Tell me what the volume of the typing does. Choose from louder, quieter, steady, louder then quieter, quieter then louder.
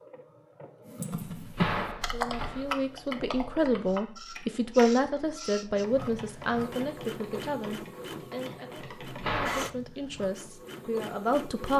quieter.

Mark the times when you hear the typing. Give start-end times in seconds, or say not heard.
0.8-9.4.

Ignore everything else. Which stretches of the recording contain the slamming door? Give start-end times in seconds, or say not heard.
1.1-2.6, 9.1-9.7.